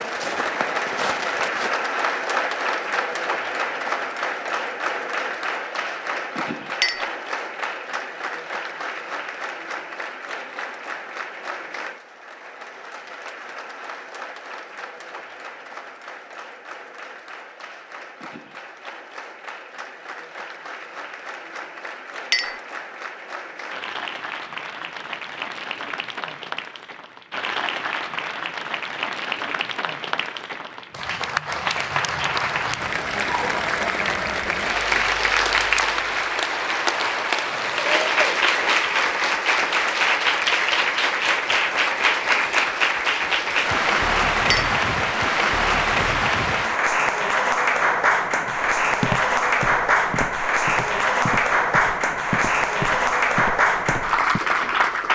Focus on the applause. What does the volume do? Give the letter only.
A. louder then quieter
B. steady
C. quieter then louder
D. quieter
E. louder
C.